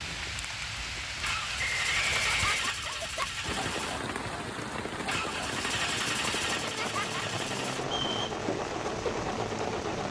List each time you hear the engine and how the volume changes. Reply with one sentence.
The engine can be heard from 0.0 to 10.0 s, at a steady volume.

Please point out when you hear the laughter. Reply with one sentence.
The laughter can be heard from 1.9 to 3.3 s and from 6.5 to 7.2 s.